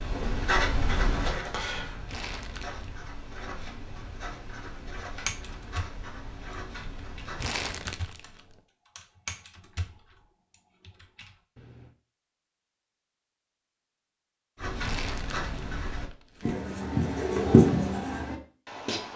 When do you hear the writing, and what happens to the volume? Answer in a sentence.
The writing can be heard from 0.0 to 7.5 s, getting quieter; and from 14.6 to 19.1 s, getting louder then quieter.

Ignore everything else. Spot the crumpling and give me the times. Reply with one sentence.
The crumpling can be heard from 2.0 to 2.9 s, from 7.3 to 8.6 s and from 14.8 to 16.6 s.